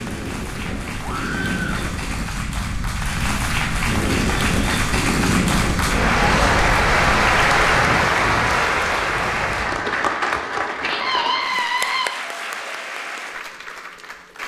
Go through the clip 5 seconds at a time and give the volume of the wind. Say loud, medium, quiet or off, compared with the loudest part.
loud, loud, off.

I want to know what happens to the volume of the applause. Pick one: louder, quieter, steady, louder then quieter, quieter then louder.
louder then quieter.